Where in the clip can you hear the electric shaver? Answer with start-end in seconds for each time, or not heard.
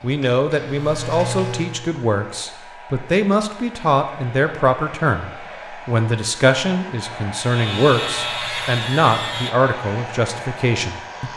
0.0-1.9, 7.3-11.3.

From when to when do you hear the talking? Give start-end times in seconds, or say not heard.
0.0-11.3.